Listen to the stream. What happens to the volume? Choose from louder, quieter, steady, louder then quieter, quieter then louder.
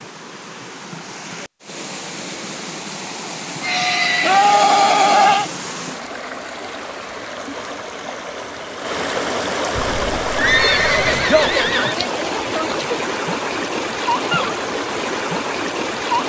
louder.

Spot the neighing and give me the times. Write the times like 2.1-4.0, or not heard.
3.6-5.5, 10.3-11.9.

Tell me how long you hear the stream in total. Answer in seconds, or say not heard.
16 s.